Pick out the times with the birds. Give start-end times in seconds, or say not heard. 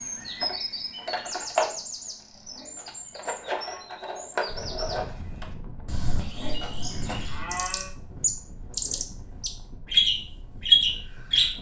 0.0-11.5.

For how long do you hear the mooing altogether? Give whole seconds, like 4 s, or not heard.
3 s.